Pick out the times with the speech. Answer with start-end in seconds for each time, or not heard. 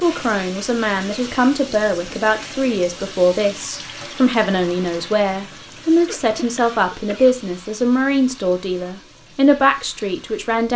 0.0-10.7.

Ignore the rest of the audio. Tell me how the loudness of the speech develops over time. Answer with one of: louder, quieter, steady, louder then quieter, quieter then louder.
steady.